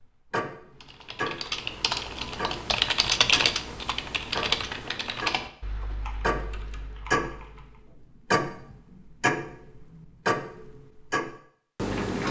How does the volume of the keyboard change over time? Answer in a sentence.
The loudness of the keyboard goes up, then down.